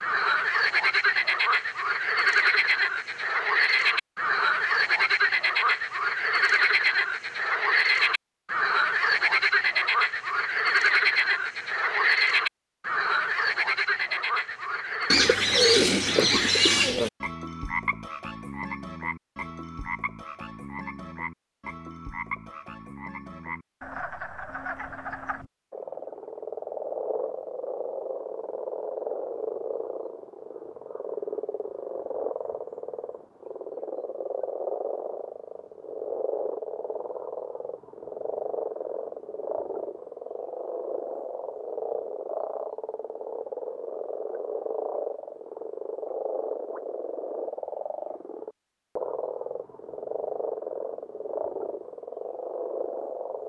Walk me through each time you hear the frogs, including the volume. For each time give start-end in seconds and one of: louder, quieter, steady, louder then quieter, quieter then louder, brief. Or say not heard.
0.0-53.4 quieter.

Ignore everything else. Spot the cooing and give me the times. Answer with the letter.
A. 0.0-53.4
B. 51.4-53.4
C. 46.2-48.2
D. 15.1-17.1
D.